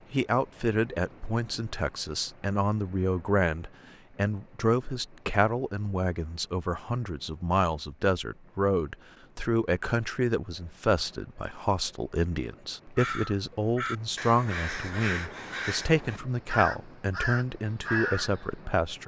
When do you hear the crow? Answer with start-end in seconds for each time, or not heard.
12.9-18.4.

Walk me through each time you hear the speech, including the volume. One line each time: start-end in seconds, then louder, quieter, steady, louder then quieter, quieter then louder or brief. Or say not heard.
0.1-19.0 steady.